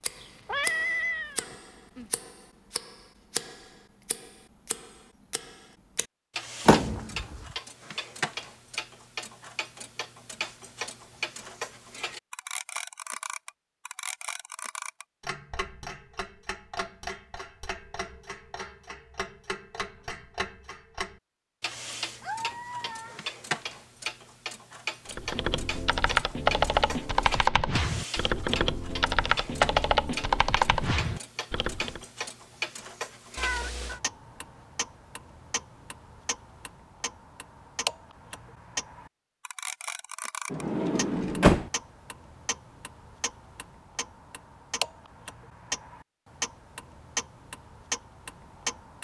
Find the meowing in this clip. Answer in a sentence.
The meowing can be heard from 0.1 to 2.1 s, from 22.2 to 23.2 s and from 33.4 to 34.0 s.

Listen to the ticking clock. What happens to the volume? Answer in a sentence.
The loudness of the ticking clock stays about the same.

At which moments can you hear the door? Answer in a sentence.
The door can be heard from 6.7 to 7.4 s and from 40.5 to 41.7 s.